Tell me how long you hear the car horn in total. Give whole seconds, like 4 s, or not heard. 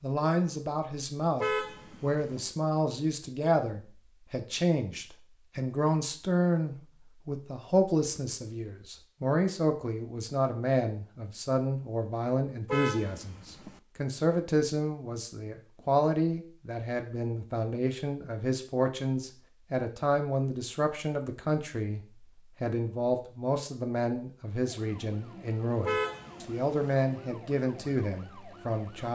3 s.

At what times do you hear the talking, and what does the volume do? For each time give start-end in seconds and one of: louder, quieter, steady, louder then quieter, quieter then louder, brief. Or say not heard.
0.0-29.1 steady.